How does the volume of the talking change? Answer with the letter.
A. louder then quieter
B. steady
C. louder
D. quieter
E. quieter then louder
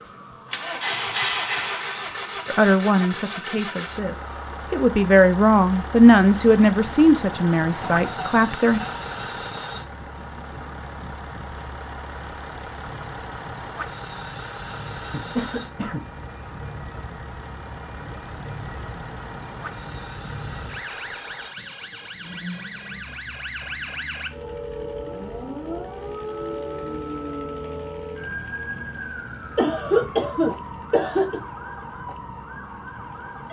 A.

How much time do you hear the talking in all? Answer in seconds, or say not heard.
6 s.